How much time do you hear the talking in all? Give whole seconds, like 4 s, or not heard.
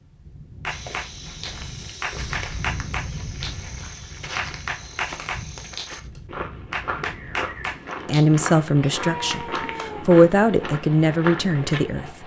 4 s.